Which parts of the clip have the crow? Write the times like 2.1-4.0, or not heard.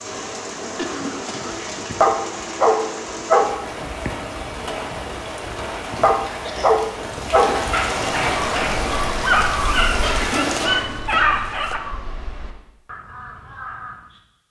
8.3-14.2.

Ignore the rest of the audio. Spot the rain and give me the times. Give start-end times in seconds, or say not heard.
0.0-10.7.